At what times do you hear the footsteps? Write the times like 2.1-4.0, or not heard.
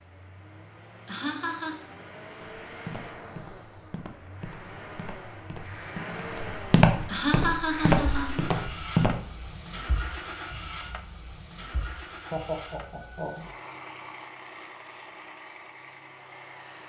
2.6-9.2.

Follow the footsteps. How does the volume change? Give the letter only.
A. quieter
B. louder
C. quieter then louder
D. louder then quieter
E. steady
B.